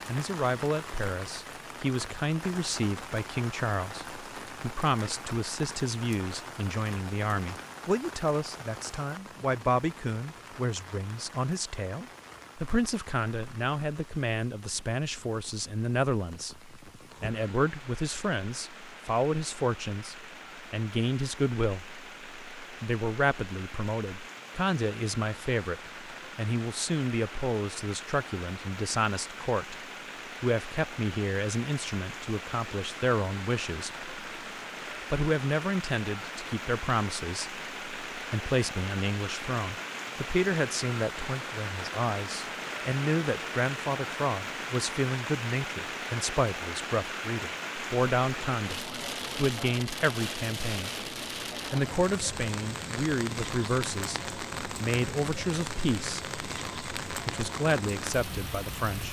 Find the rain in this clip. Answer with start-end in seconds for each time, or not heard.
0.0-59.0.